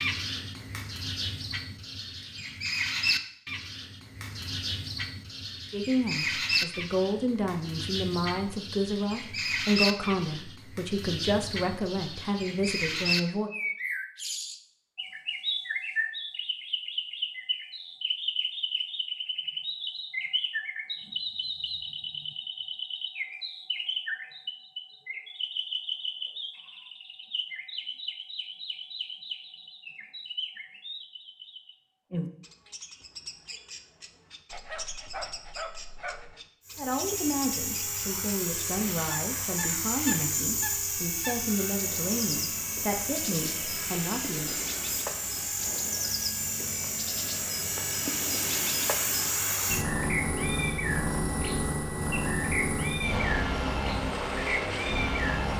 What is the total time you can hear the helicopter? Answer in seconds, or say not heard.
19 s.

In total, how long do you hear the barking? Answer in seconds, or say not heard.
2 s.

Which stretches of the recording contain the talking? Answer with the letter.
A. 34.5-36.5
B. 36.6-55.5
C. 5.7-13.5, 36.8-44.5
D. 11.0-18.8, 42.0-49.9
C.